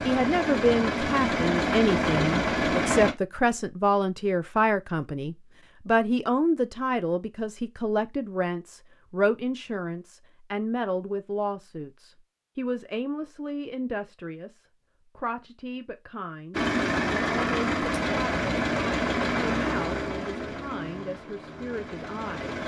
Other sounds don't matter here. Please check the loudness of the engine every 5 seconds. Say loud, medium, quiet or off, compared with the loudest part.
loud, off, off, loud, medium.